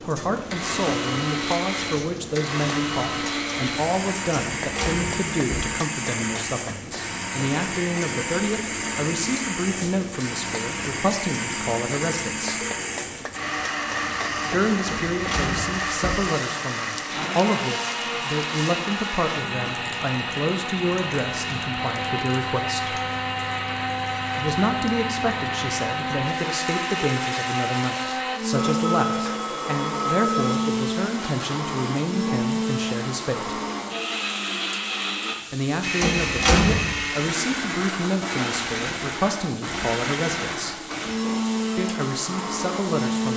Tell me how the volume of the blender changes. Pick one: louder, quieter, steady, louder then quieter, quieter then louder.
steady.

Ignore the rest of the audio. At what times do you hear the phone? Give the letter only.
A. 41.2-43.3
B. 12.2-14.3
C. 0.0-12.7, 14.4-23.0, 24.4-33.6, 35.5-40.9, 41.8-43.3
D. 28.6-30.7
D.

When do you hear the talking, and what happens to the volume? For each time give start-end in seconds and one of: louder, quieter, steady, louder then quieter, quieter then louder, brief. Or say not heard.
0.0-12.7 steady
14.4-23.0 steady
24.4-33.6 steady
35.5-40.9 steady
41.8-43.3 brief.